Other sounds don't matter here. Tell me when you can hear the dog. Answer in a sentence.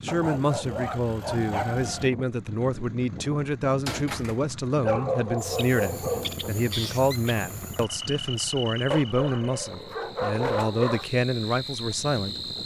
The dog can be heard from 0.1 to 2.1 s, from 4.8 to 6.5 s and from 8.9 to 11.1 s.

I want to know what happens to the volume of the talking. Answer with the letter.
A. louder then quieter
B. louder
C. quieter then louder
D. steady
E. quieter
D.